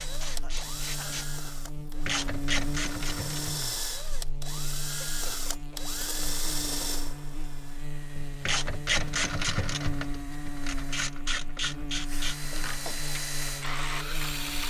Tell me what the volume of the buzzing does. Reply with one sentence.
The volume of the buzzing stays about the same.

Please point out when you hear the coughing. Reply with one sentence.
You can hear the coughing from 0.2 to 1.2 s, from 5.0 to 5.8 s and from 12.4 to 13.2 s.